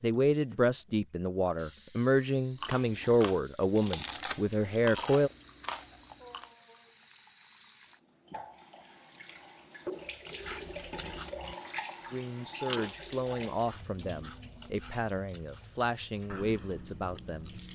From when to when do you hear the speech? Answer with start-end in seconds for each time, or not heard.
0.0-5.3, 12.1-17.5.